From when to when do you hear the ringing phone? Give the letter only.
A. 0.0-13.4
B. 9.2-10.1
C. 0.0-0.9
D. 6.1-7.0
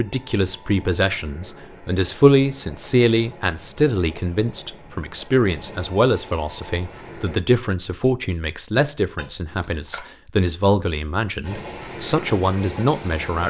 B.